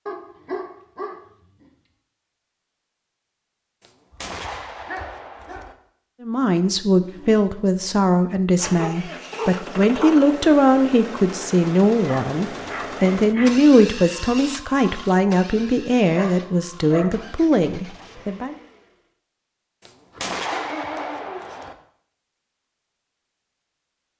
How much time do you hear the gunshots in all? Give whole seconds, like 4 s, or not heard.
4 s.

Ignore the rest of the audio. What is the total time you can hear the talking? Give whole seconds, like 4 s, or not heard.
12 s.